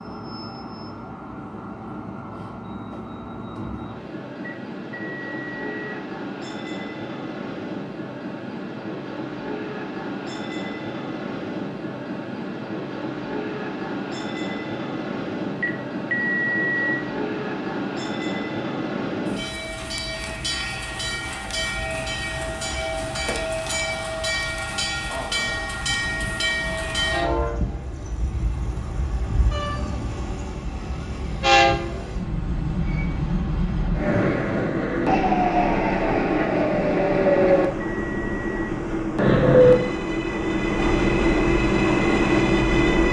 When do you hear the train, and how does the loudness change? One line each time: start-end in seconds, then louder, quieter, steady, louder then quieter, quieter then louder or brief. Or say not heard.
0.0-43.0 louder.